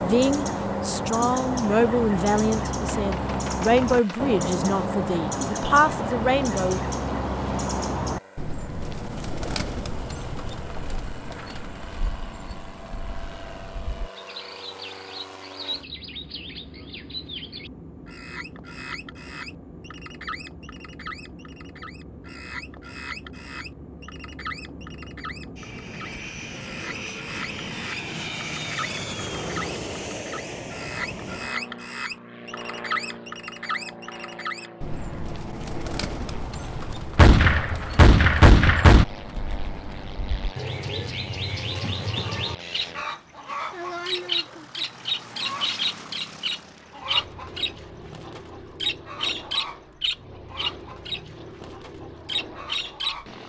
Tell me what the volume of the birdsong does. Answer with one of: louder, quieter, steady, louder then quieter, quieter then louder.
quieter then louder.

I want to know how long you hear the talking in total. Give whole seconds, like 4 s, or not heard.
7 s.